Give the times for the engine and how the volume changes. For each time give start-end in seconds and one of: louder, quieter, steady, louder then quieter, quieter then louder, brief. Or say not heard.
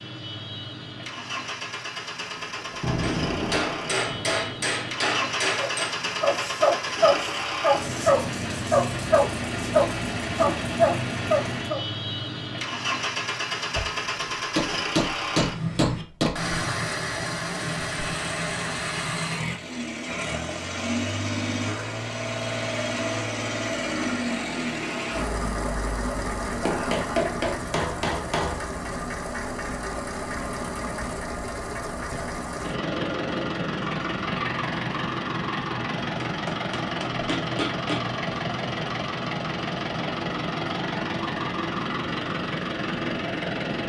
0.0-43.8 steady.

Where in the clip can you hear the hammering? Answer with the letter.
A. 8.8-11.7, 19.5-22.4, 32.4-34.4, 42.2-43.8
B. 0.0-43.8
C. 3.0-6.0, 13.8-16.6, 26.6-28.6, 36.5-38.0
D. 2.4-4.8
C.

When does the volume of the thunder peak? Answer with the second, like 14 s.
3 s.